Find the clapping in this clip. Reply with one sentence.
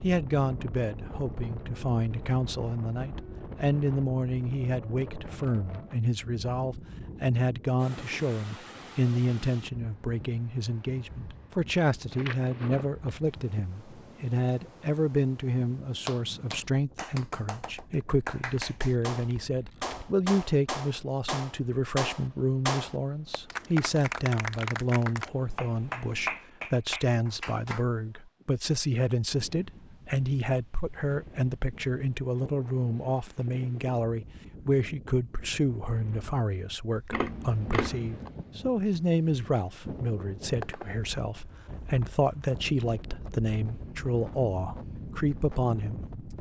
The clapping can be heard from 16.1 to 27.9 s.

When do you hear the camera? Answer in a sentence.
You can hear the camera from 12.1 to 12.9 s, from 18.5 to 20.1 s and from 37.1 to 38.3 s.